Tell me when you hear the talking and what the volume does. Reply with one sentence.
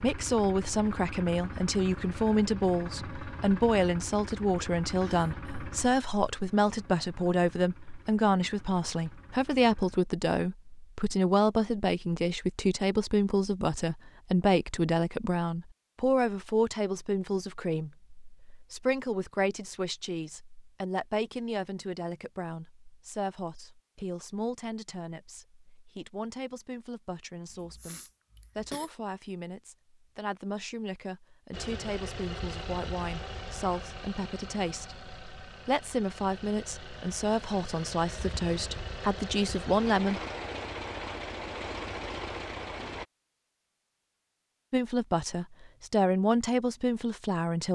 You can hear the talking from 0.0 to 40.2 s, getting quieter then louder; and briefly from 44.7 to 47.6 s.